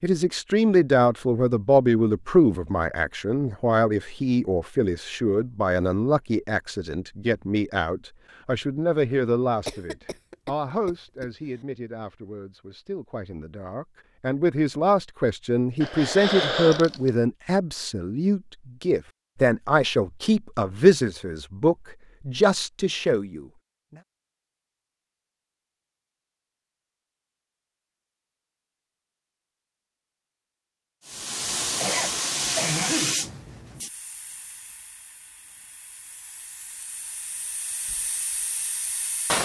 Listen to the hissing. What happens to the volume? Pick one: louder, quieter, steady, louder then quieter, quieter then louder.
quieter then louder.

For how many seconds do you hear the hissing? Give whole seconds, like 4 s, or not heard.
8 s.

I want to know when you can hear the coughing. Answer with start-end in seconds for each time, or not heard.
9.7-11.3, 15.8-17.1, 31.8-33.1.